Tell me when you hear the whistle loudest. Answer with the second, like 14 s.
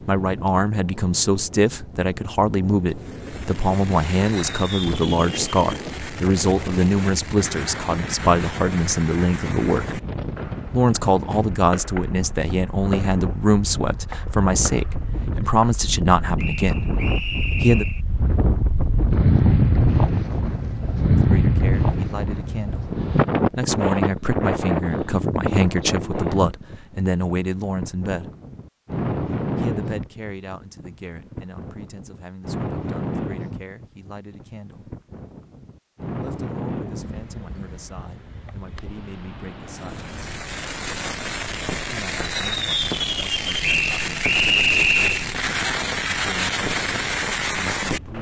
45 s.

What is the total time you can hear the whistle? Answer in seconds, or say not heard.
3 s.